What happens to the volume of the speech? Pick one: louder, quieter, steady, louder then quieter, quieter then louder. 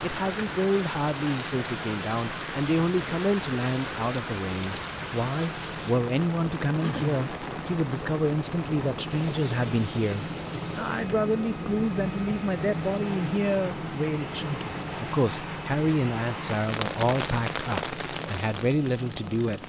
steady.